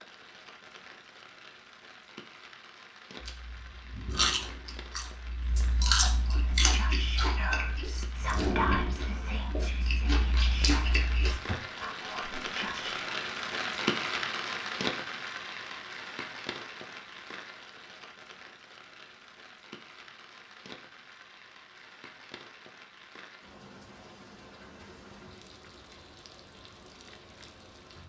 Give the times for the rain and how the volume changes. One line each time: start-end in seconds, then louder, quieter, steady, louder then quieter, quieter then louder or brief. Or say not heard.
0.0-28.0 louder then quieter.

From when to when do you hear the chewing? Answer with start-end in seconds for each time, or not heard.
3.2-11.6.